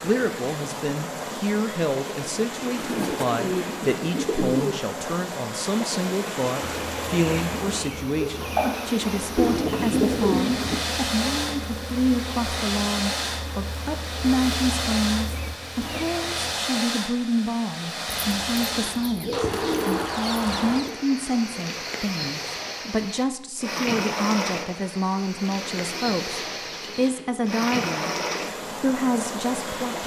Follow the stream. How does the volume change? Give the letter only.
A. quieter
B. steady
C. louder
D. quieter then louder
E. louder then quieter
B.